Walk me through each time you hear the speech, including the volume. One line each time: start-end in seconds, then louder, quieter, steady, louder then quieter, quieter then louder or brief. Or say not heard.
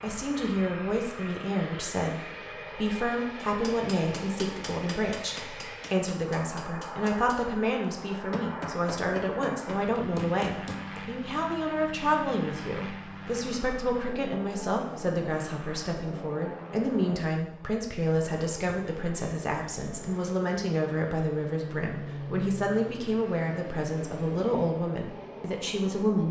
0.0-26.2 steady.